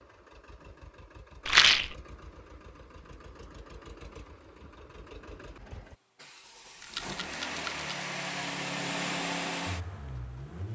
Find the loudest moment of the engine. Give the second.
9 s.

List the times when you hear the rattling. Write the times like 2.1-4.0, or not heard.
1.4-1.9, 6.8-7.9.